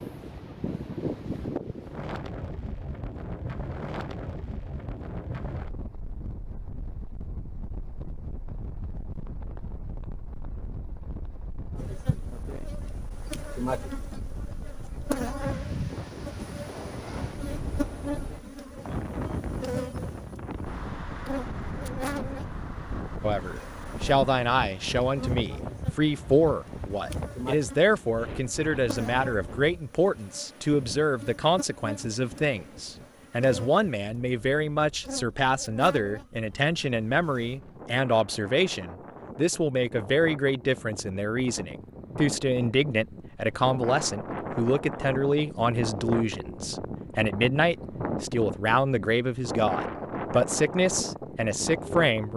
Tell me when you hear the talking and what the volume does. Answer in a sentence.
The talking can be heard from 23.2 to 52.3 s, at a steady volume.